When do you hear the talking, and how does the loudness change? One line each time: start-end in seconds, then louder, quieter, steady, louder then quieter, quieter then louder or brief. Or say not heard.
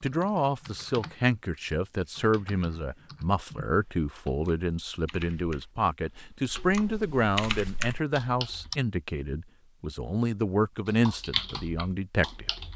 0.0-12.5 steady.